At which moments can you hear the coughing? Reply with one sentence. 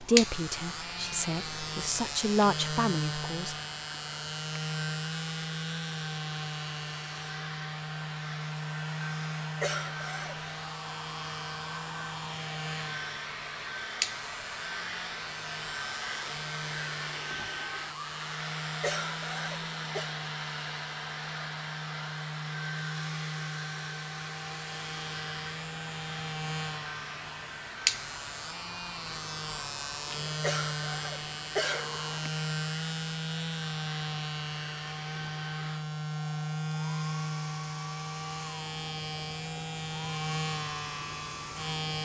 The coughing can be heard from 9.6 to 10.6 s, from 18.8 to 20.1 s and from 30.4 to 32.3 s.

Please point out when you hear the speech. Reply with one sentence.
The speech can be heard from 0.0 to 3.5 s.